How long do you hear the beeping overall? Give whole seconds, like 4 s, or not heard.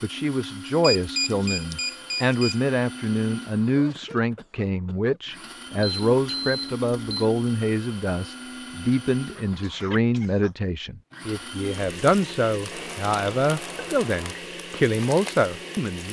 5 s.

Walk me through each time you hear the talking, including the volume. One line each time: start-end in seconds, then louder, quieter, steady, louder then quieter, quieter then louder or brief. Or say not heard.
0.0-16.0 steady.